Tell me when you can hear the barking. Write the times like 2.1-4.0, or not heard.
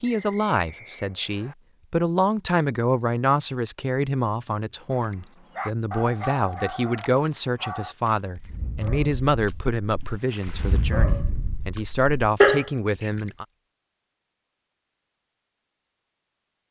4.9-13.1.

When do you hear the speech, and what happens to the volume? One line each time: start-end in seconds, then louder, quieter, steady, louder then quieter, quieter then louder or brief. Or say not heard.
0.0-13.4 steady.